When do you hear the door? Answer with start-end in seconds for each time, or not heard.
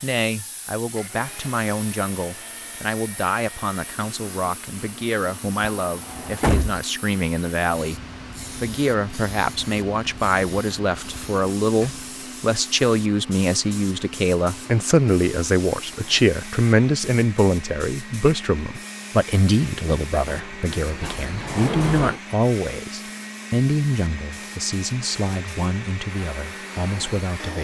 5.8-6.8, 11.8-12.2, 20.2-22.2.